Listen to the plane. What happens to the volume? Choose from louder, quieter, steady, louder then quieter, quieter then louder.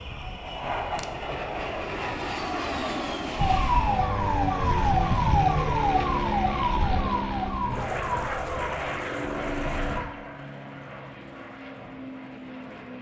quieter.